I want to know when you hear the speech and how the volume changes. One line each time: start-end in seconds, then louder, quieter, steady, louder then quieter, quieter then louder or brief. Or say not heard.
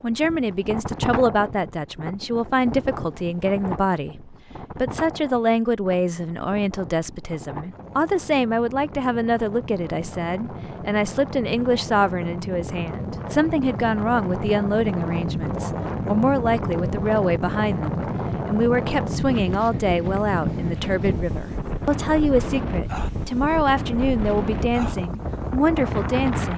0.0-26.5 steady.